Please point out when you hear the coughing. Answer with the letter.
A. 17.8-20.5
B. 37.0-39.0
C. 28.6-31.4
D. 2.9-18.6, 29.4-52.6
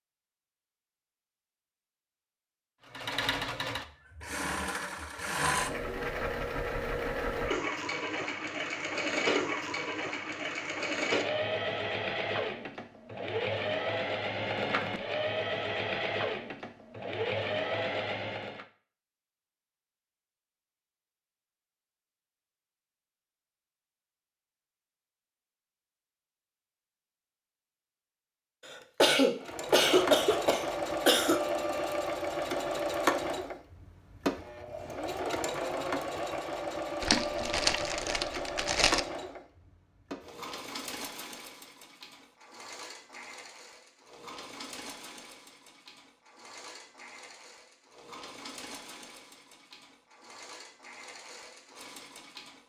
C.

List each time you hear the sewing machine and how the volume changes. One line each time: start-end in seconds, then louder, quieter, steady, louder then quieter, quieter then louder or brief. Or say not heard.
2.9-18.6 steady
29.4-52.6 quieter.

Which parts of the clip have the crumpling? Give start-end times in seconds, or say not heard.
37.0-39.0.